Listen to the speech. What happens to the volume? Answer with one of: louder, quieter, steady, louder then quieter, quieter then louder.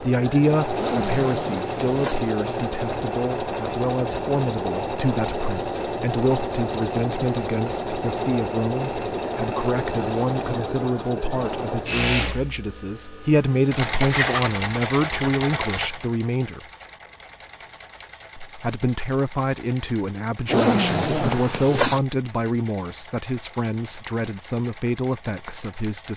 steady.